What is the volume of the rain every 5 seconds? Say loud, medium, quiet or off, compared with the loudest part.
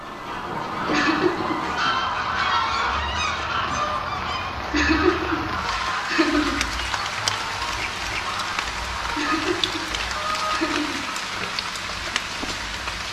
medium, loud, loud.